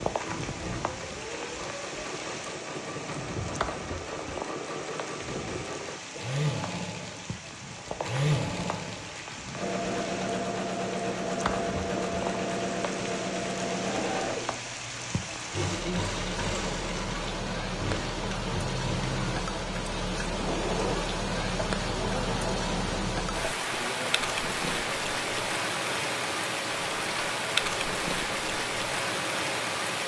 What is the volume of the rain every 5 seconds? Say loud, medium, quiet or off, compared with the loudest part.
medium, medium, medium, loud, loud, loud.